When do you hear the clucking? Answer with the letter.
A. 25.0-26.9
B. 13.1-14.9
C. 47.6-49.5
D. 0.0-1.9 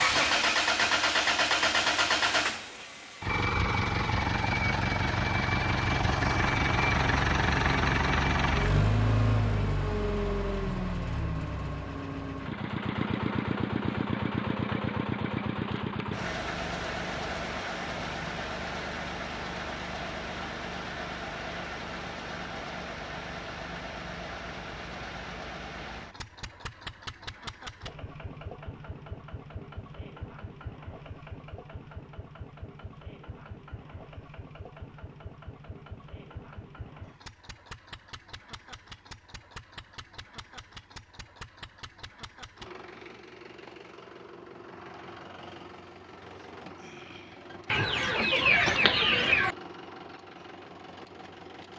C.